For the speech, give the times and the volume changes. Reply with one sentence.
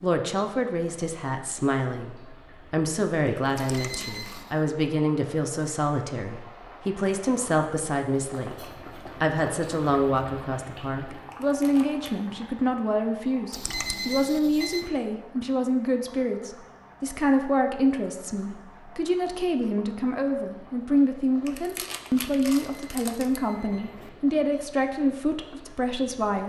You can hear the speech from 0.0 to 26.4 s, at a steady volume.